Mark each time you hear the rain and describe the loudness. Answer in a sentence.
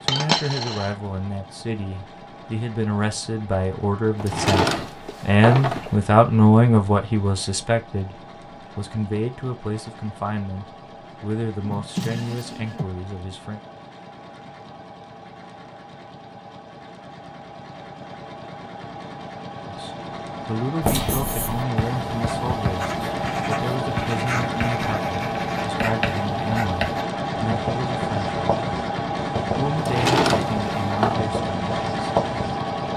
You can't hear the rain here.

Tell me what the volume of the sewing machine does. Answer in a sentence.
The loudness of the sewing machine goes up.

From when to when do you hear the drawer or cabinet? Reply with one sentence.
The drawer or cabinet can be heard from 4.2 to 6.0 s, from 11.6 to 12.9 s and from 29.8 to 31.2 s.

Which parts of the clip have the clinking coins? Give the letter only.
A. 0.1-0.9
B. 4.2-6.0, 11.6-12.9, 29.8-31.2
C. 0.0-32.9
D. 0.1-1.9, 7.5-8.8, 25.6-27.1
A.